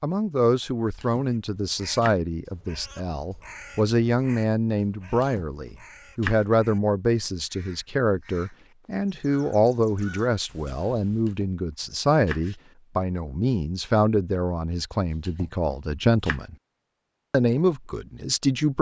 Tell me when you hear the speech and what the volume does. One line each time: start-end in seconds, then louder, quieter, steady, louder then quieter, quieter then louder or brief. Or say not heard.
0.0-16.6 steady
17.3-18.7 brief.